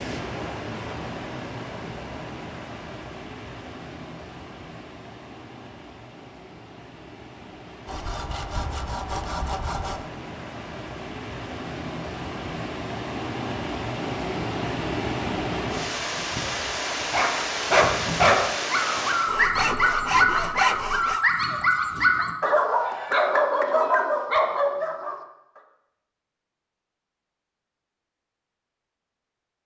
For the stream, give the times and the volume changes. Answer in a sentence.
The stream can be heard from 0.0 to 19.4 s, getting quieter then louder.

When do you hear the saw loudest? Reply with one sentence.
The loudest moment of the saw is at 21 seconds.